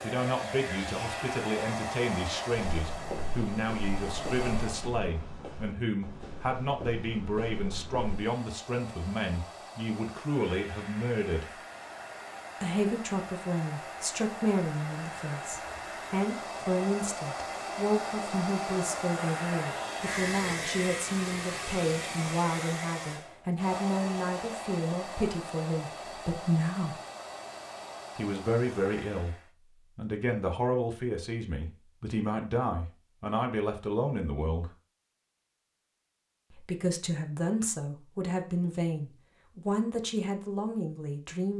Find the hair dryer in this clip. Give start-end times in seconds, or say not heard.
0.0-5.0, 8.0-29.5.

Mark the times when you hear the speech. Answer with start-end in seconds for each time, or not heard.
0.0-11.6, 12.6-26.9, 28.1-34.7, 36.5-41.5.